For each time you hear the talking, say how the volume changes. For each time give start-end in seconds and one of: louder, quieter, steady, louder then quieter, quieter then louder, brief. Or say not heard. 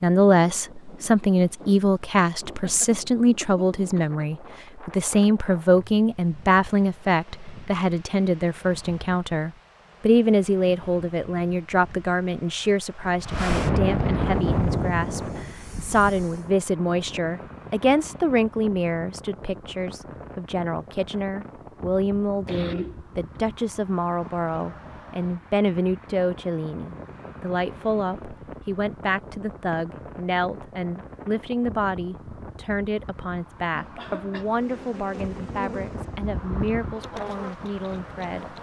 0.0-38.5 quieter.